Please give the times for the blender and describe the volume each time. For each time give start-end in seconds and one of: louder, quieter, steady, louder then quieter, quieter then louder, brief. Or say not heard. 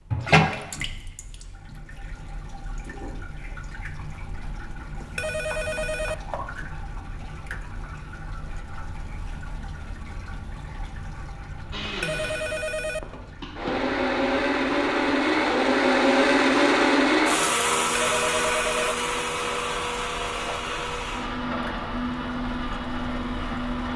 11.7-23.9 louder then quieter.